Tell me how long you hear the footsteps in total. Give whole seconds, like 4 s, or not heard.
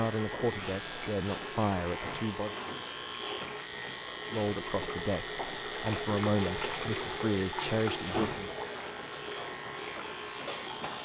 not heard.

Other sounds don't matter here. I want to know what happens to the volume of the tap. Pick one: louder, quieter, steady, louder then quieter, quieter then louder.
louder then quieter.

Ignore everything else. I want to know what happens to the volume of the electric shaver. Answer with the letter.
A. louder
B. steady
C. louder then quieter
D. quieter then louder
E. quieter
B.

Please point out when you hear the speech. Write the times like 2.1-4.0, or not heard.
0.0-2.5, 4.3-8.5.